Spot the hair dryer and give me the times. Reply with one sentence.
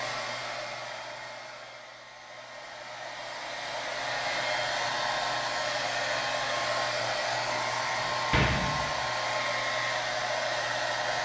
The hair dryer can be heard from 0.0 to 11.1 s.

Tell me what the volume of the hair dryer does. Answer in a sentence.
The volume of the hair dryer goes up.